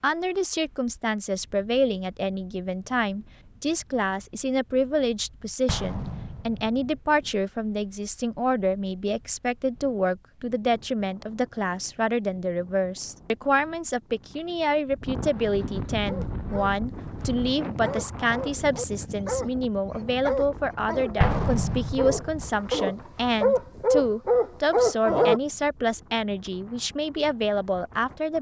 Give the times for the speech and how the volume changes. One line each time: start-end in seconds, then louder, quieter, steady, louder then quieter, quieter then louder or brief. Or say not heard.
0.0-28.3 steady.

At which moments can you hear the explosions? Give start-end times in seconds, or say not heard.
5.7-7.0, 21.2-22.5.